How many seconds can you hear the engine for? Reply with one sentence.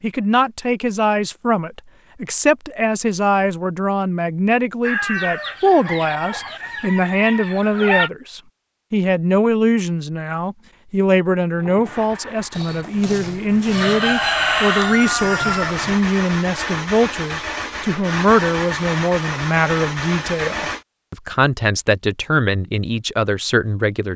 The engine can be heard for 9 seconds in total.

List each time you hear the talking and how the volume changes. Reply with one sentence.
You can hear the talking from 0.0 to 24.1 s, at a steady volume.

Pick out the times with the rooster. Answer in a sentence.
The rooster can be heard from 4.8 to 8.1 s and from 12.6 to 16.0 s.